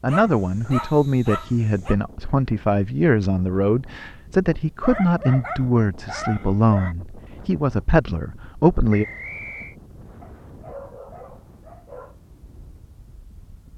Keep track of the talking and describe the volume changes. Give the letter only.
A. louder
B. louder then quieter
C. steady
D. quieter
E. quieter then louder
C.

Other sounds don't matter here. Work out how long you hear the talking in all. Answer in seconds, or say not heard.
9 s.